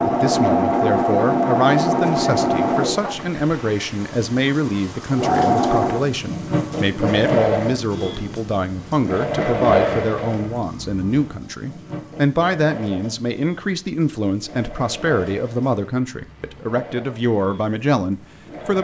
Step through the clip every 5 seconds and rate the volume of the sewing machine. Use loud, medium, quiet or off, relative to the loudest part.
loud, loud, quiet, quiet.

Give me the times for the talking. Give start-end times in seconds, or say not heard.
0.0-18.8.